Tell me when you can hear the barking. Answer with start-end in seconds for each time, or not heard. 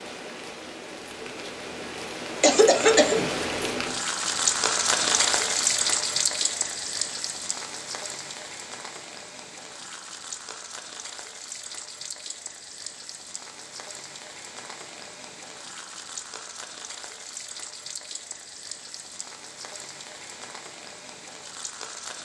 not heard.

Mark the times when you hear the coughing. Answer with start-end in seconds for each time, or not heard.
2.4-3.2.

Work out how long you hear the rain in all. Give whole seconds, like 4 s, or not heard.
22 s.